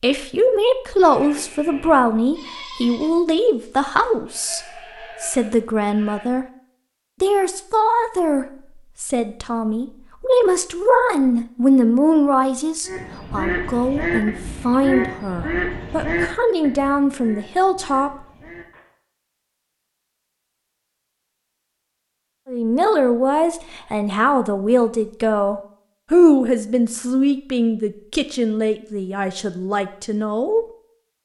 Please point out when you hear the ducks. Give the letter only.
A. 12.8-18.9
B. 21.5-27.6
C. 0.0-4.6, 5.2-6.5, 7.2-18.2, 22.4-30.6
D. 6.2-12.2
A.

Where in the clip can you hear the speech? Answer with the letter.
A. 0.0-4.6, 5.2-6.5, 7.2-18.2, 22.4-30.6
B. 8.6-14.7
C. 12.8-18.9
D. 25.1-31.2
A.